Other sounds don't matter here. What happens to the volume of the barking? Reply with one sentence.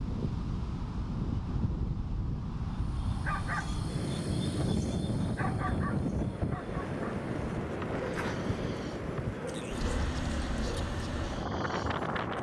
The volume of the barking goes down.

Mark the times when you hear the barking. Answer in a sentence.
You can hear the barking from 2.9 to 12.3 s.